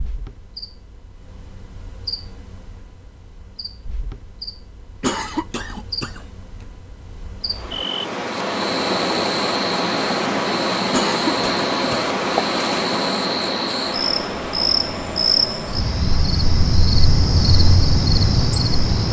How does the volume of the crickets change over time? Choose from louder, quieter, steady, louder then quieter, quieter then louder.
louder.